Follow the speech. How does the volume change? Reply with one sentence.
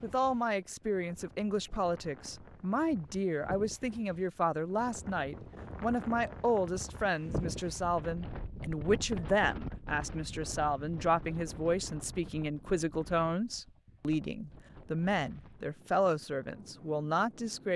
The loudness of the speech stays about the same.